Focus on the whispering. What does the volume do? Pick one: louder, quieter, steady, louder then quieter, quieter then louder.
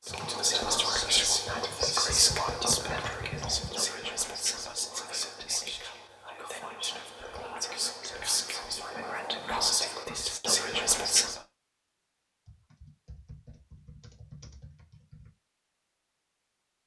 quieter then louder.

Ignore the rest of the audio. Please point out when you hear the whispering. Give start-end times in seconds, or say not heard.
0.1-11.4.